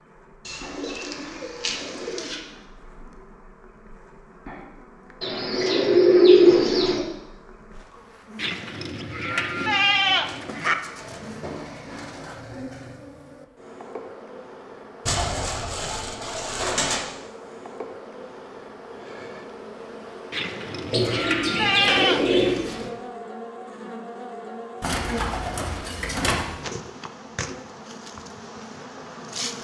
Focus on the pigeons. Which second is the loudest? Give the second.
6 s.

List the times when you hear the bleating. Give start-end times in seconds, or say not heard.
8.3-10.8, 20.3-22.3.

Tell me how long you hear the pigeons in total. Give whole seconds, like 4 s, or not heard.
12 s.